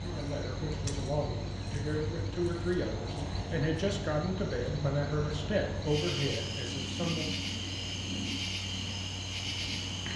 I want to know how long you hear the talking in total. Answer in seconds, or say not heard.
7 s.